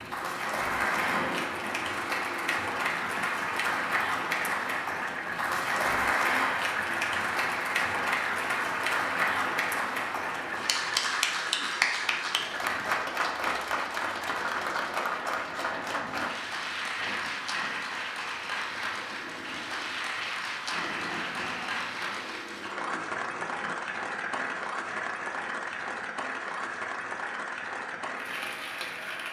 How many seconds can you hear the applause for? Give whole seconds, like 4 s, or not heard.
29 s.